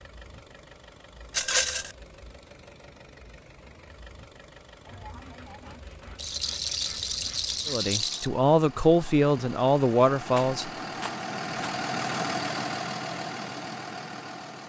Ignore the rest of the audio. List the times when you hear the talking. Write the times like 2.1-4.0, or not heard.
7.7-10.7.